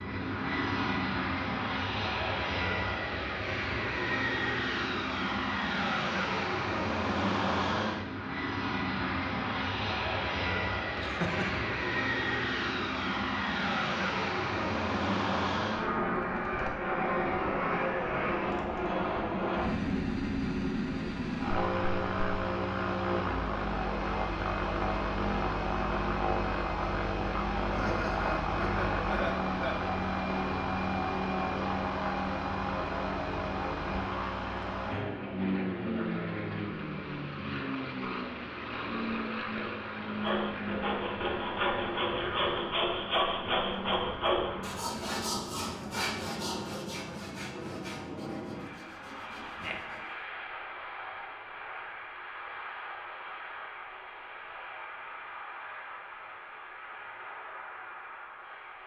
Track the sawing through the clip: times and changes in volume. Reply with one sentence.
You can hear the sawing from 40.0 to 50.2 s, getting quieter.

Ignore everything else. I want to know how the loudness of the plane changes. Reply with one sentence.
The loudness of the plane goes down.